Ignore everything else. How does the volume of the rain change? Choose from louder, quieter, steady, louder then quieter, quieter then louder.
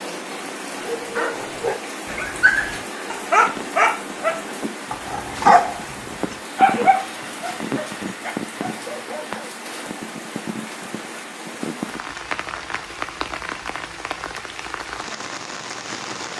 steady.